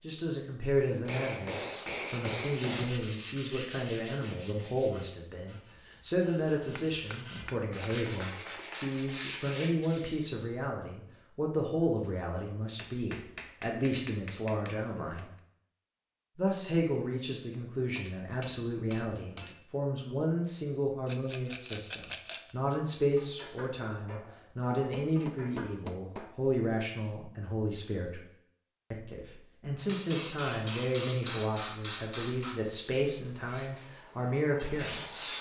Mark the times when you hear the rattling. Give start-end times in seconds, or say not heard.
21.1-22.6.